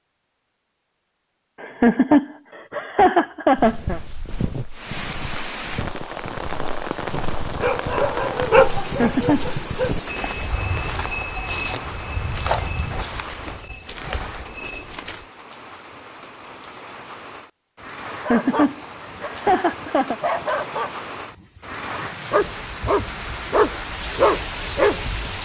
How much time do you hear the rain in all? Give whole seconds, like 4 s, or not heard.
21 s.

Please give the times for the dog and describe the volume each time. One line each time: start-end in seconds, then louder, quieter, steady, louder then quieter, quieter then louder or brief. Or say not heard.
7.5-9.9 brief
18.2-25.4 louder.